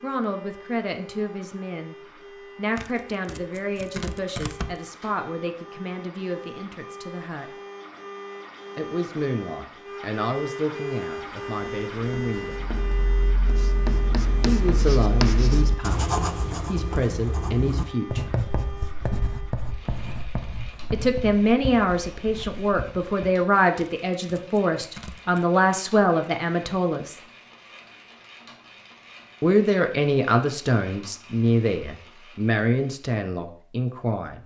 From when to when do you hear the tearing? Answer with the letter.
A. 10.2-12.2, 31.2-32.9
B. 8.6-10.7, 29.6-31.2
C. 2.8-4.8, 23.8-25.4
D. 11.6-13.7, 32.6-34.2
C.